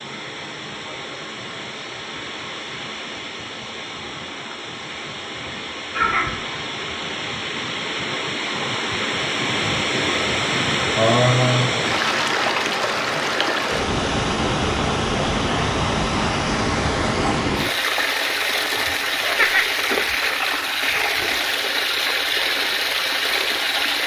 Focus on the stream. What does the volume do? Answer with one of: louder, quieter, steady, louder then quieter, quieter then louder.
louder.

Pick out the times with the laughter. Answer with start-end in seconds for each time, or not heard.
6.0-6.4, 10.9-11.7, 19.2-19.8.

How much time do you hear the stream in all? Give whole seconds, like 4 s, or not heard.
24 s.